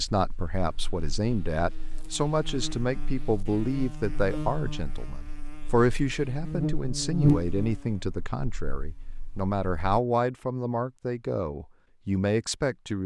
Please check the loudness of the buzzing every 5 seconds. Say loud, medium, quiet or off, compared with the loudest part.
medium, loud, off.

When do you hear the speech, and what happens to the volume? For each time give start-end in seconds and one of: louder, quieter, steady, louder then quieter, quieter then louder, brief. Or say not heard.
0.0-13.0 steady.